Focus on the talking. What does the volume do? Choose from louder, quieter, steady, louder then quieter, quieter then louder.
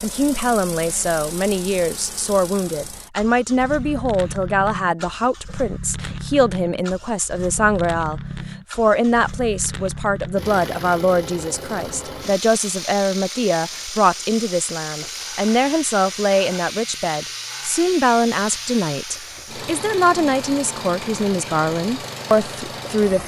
steady.